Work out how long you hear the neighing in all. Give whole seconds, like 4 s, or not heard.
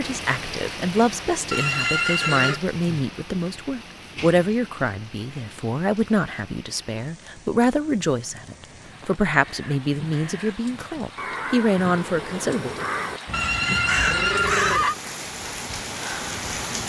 3 s.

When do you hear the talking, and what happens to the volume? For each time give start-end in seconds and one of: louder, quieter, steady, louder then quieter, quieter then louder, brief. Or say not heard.
0.0-12.8 steady.